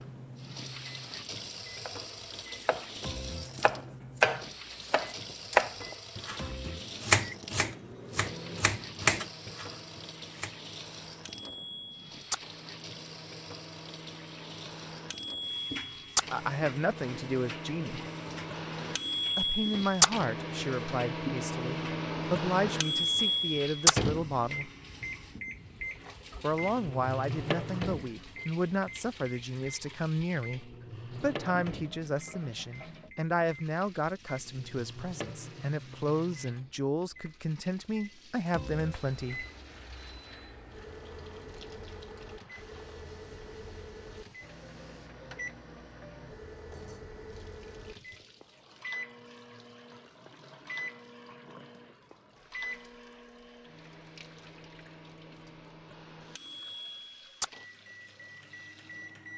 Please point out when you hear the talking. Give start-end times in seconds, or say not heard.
16.3-18.1, 19.4-24.7, 26.4-39.5.